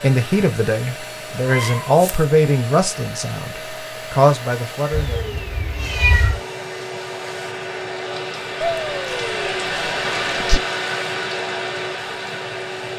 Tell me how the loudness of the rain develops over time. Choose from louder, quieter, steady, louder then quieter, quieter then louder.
louder.